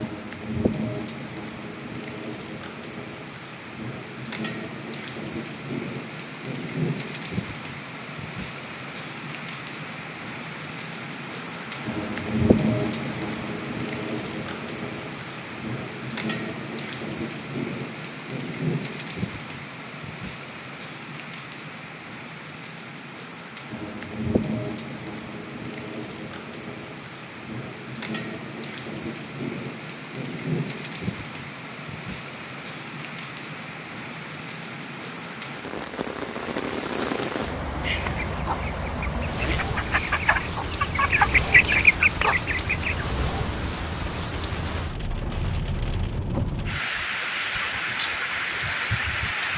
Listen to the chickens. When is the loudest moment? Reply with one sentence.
The volume of the chickens peaks at 42 seconds.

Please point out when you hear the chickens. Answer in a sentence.
The chickens can be heard from 37.8 to 43.0 s.